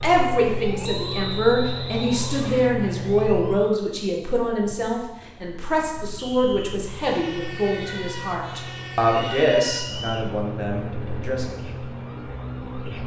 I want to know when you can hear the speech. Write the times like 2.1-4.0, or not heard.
0.0-11.6.